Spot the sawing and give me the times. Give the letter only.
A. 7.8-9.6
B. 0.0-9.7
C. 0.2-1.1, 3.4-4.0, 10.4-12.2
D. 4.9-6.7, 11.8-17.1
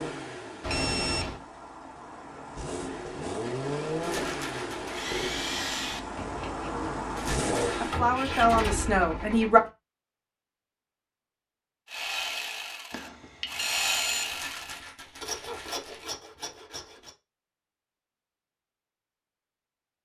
D.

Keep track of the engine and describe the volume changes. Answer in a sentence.
The loudness of the engine goes up.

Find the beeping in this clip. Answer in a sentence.
The beeping can be heard from 0.6 to 1.4 s and from 12.9 to 14.3 s.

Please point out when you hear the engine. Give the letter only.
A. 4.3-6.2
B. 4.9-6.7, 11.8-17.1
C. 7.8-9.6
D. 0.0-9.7
D.